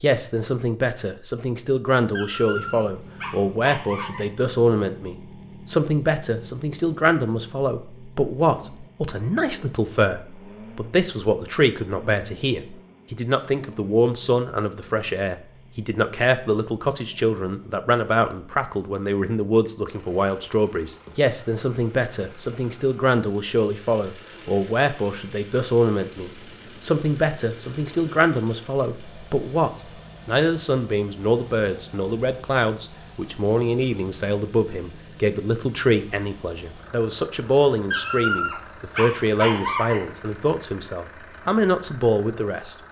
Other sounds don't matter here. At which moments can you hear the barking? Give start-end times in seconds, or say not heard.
2.1-4.2, 37.9-40.3.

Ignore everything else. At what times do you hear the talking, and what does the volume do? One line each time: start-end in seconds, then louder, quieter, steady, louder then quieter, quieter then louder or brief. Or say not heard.
0.0-42.8 steady.